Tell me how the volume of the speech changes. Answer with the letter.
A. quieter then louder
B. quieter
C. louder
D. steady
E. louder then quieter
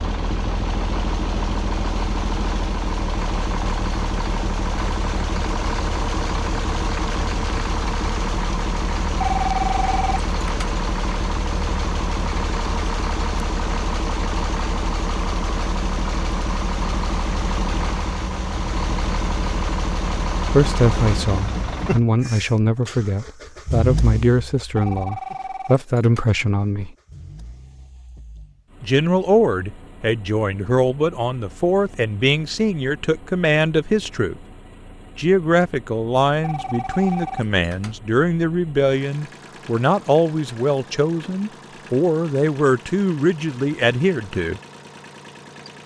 D.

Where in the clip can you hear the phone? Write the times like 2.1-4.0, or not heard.
9.2-10.7, 24.8-26.2, 36.4-38.0.